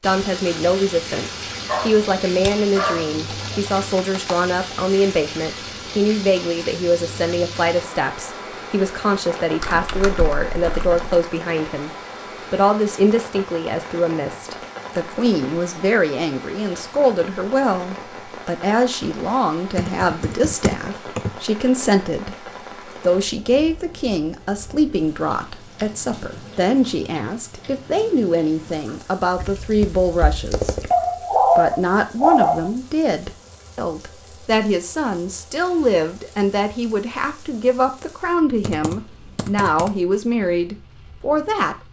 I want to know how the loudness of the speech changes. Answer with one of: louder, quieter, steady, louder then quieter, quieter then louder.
steady.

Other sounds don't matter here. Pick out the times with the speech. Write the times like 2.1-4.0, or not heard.
0.0-30.9, 31.6-41.8.